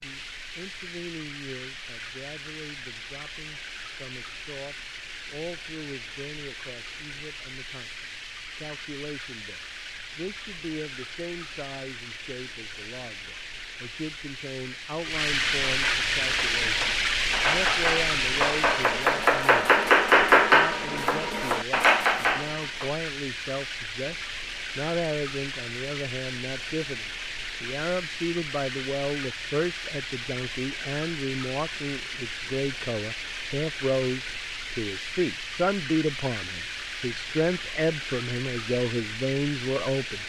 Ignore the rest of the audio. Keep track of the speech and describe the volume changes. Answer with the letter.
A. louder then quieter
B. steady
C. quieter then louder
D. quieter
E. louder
E.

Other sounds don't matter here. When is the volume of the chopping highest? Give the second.
20 s.